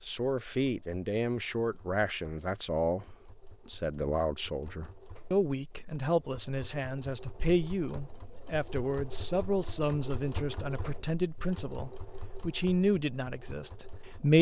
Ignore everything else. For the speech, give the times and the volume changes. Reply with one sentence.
The speech can be heard from 0.0 to 14.3 s, at a steady volume.